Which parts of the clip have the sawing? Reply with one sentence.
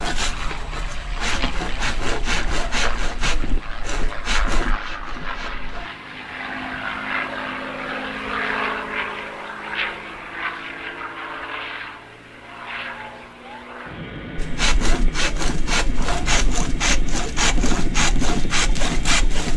You can hear the sawing from 0.0 to 5.8 s and from 14.3 to 19.5 s.